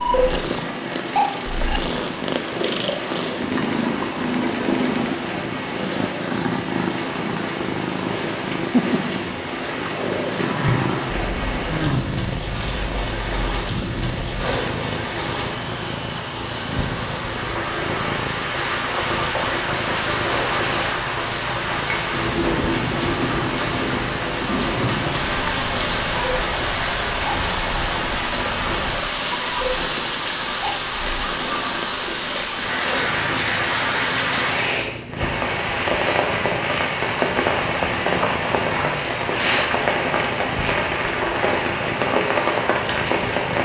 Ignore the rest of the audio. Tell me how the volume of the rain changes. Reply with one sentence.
The volume of the rain goes up.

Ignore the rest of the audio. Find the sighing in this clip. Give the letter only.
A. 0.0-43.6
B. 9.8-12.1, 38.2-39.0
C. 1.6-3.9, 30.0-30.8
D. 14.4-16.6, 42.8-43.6
B.